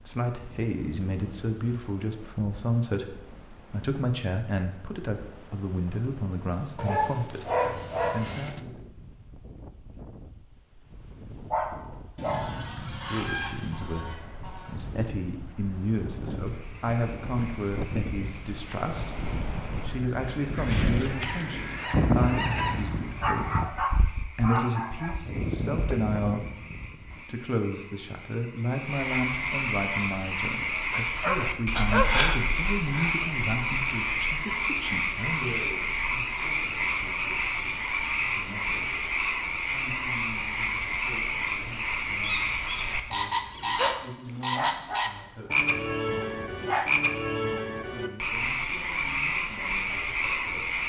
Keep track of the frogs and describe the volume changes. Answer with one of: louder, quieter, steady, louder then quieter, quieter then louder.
louder.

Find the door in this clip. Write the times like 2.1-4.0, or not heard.
not heard.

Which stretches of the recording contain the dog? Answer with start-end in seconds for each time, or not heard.
6.8-8.6, 11.5-12.6, 23.2-25.2, 30.9-32.2, 44.2-46.9.